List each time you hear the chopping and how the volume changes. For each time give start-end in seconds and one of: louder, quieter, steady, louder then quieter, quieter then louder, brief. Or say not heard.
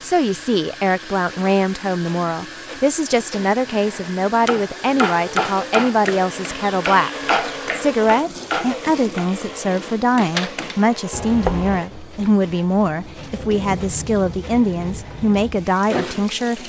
4.5-11.8 quieter then louder.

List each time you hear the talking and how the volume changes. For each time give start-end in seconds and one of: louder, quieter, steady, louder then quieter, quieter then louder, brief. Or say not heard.
0.0-16.6 steady.